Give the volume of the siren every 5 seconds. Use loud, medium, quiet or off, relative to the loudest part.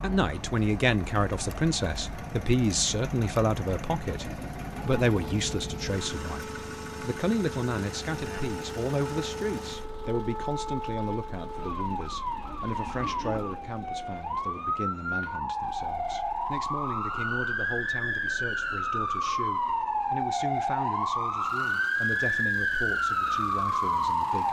quiet, quiet, medium, loud, loud.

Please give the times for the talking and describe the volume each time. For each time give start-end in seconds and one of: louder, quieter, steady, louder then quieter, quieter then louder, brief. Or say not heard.
0.0-24.4 quieter.